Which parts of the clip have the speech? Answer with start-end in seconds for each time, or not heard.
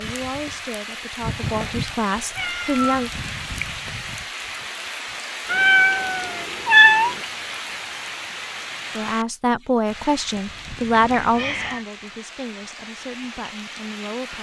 0.0-3.1, 8.9-14.3.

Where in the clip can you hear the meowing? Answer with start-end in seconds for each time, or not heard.
1.3-3.1, 5.5-7.2, 10.9-11.8.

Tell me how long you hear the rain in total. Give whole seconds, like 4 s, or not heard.
14 s.